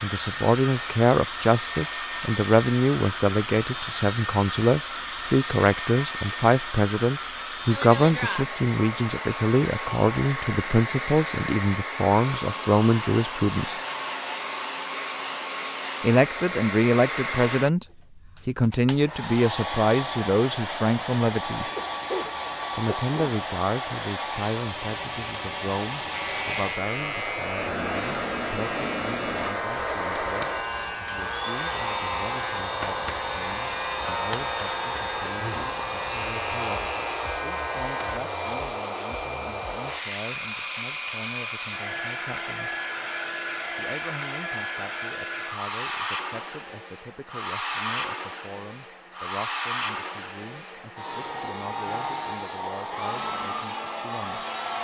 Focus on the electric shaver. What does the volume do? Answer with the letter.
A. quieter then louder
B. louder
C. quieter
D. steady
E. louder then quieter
D.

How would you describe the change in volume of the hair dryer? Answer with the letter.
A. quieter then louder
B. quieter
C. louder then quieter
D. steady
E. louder
D.